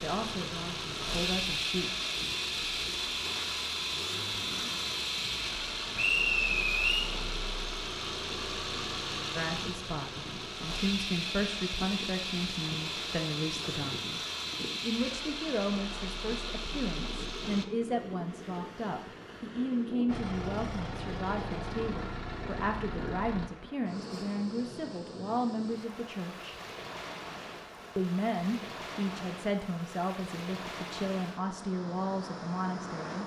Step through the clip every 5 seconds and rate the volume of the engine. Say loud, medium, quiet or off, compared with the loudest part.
loud, loud, loud, medium, medium, off, off.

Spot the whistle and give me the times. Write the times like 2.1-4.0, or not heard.
6.0-7.1.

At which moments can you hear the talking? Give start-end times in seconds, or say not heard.
0.0-1.9, 9.3-26.6, 27.9-33.2.